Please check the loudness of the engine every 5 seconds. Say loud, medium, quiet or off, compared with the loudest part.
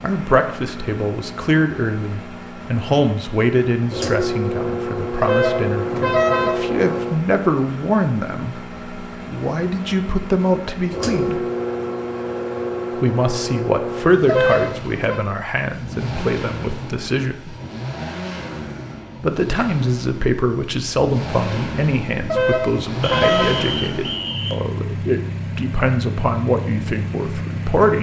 loud, loud, loud, medium, loud, loud.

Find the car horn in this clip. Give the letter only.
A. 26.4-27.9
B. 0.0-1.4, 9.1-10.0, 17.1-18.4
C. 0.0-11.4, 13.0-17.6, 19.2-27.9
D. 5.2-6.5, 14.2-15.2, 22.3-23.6
D.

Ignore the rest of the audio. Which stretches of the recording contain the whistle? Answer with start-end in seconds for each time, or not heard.
23.0-24.6.